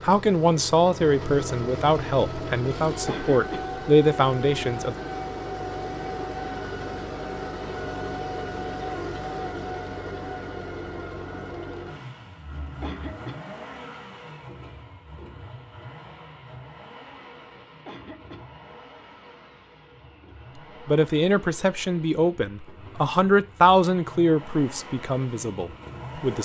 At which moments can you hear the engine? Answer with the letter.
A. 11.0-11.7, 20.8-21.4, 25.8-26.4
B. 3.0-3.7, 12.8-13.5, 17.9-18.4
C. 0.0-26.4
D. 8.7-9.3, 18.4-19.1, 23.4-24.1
C.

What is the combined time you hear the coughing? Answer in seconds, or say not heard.
2 s.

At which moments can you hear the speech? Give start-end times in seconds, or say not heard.
0.0-5.0, 20.9-26.4.